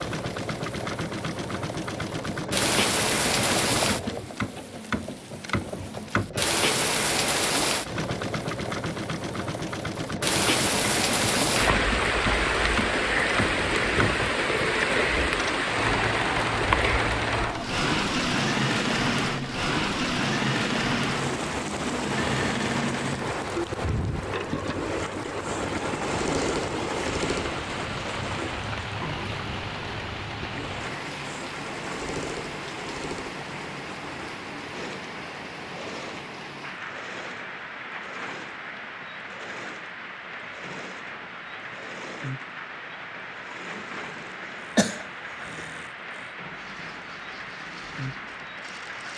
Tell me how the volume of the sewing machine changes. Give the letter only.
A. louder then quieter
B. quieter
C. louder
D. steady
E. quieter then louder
B.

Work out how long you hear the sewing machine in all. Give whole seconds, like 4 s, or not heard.
49 s.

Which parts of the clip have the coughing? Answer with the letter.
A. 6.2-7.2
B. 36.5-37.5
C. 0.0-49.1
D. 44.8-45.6
D.